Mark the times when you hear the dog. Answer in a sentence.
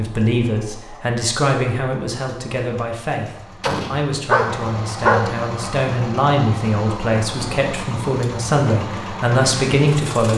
The dog can be heard from 3.6 to 5.3 s.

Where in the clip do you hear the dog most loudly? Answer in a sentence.
The volume of the dog peaks at 5 seconds.